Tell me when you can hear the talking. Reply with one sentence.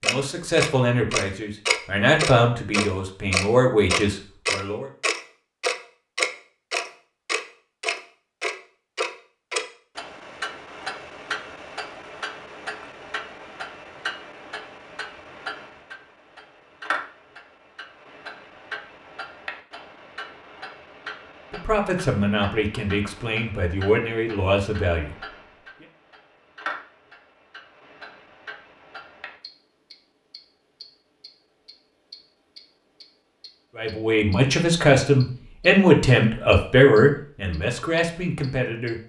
You can hear the talking from 0.0 to 4.9 s, from 21.5 to 25.4 s and from 33.8 to 39.0 s.